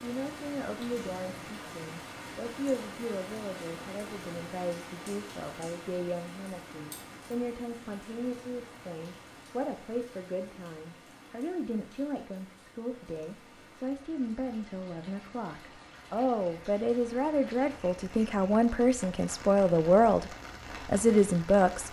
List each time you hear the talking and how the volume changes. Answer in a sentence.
The talking can be heard from 0.0 to 21.8 s, getting louder.